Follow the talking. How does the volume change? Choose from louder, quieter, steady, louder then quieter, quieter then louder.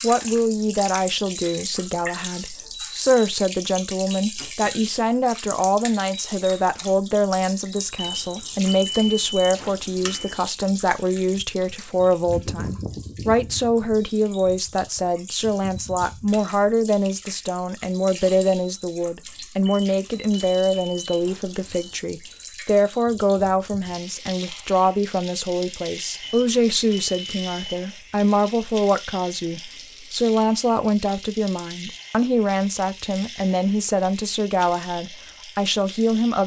steady.